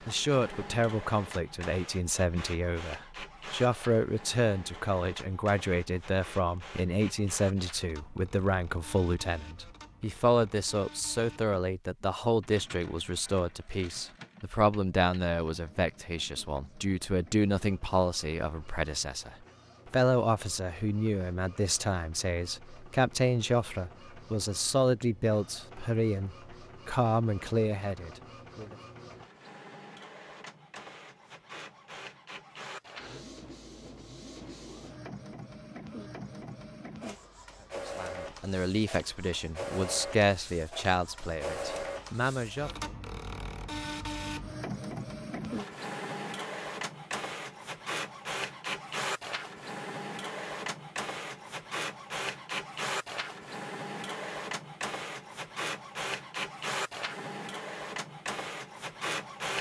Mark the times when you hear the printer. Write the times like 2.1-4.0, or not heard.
0.0-59.5.